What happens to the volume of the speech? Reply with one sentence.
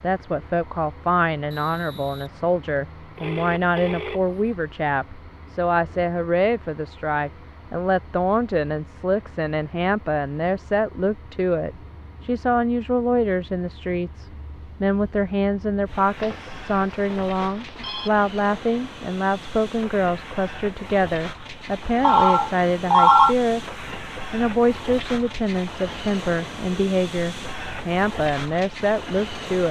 The loudness of the speech stays about the same.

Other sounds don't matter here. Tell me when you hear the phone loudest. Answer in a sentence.
The volume of the phone peaks at 23 seconds.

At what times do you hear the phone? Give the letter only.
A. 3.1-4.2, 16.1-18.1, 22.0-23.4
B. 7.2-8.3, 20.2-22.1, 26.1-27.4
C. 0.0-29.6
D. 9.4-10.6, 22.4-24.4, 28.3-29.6
A.